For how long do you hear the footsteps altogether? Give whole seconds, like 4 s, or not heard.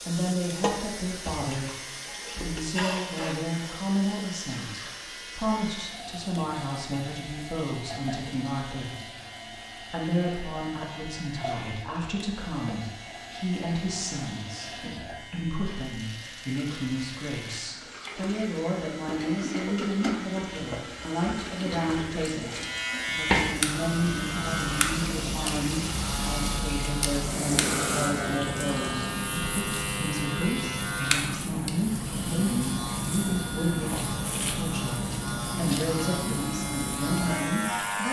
not heard.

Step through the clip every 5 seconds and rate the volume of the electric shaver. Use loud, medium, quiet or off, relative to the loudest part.
quiet, quiet, quiet, quiet, loud, loud, loud, loud.